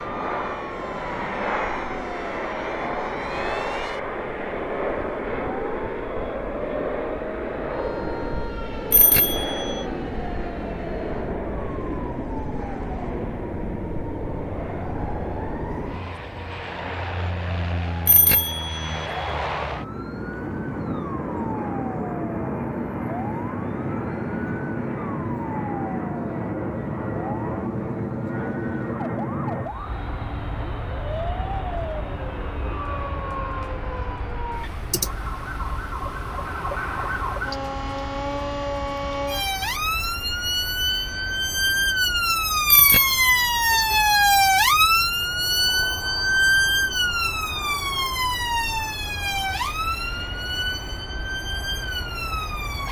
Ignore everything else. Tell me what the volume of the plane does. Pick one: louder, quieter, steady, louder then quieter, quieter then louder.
quieter.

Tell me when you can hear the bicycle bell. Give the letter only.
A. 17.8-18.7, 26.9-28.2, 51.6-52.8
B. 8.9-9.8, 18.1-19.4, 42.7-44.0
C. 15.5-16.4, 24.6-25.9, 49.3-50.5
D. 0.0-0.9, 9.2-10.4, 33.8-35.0
B.